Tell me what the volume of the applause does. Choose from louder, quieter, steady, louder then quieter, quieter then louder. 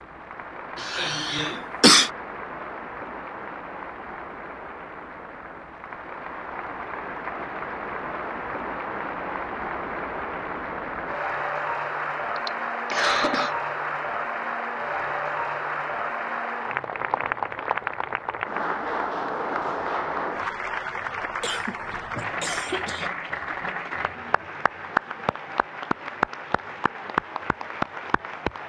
louder.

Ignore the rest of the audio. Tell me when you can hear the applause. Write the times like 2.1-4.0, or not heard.
0.0-28.6.